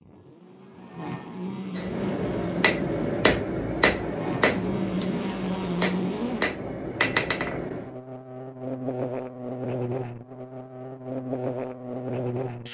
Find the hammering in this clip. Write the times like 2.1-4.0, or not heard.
1.8-8.0.